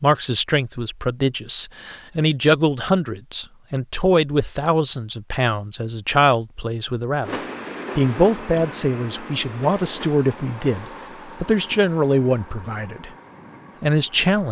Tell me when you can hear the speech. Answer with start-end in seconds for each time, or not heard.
0.0-7.3, 8.0-13.1, 13.8-14.4.